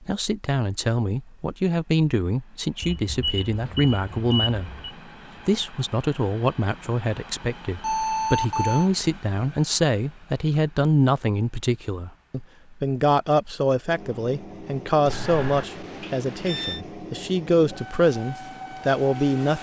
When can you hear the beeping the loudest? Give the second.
8 s.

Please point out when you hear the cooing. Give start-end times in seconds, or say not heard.
not heard.